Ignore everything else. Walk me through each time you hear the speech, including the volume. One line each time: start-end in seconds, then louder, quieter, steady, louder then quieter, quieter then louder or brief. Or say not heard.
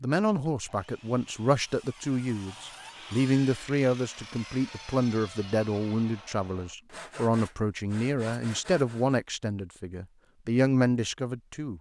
0.0-11.7 steady.